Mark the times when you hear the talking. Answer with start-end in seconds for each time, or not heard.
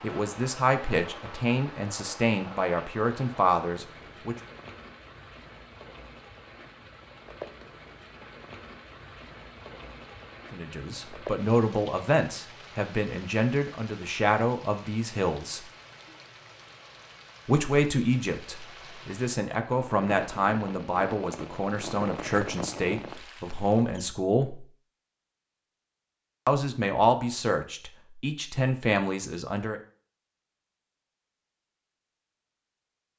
0.0-4.3, 10.5-15.6, 17.4-24.6, 26.4-29.8.